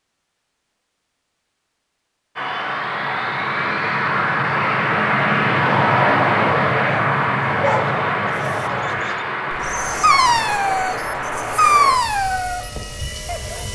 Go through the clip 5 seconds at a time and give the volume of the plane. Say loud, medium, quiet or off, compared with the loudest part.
loud, loud, medium.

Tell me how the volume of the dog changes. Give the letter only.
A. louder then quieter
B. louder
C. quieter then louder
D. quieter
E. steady
A.